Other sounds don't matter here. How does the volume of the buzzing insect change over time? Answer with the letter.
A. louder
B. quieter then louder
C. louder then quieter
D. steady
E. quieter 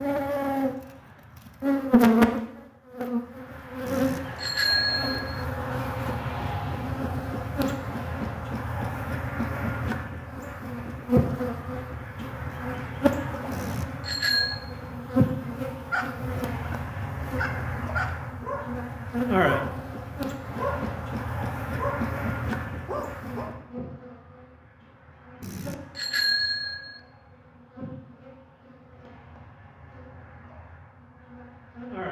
E.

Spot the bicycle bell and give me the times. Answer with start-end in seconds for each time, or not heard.
3.9-5.5, 13.5-14.6, 25.4-27.0.